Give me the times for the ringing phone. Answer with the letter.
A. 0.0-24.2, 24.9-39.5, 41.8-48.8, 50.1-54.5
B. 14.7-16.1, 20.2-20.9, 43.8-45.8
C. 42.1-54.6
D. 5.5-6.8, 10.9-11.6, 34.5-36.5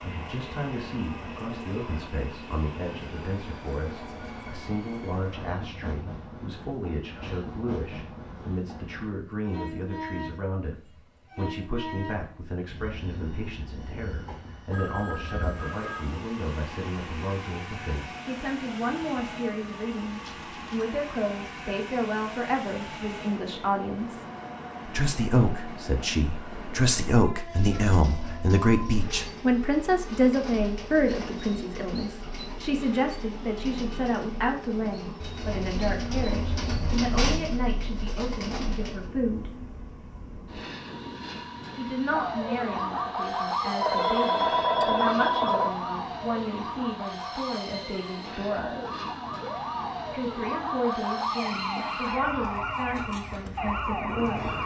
B.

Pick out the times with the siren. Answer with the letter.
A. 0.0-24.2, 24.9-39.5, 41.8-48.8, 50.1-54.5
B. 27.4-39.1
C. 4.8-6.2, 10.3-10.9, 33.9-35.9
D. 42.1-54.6
D.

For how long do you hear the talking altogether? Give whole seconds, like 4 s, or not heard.
50 s.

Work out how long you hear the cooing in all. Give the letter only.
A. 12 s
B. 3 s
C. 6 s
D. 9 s
A.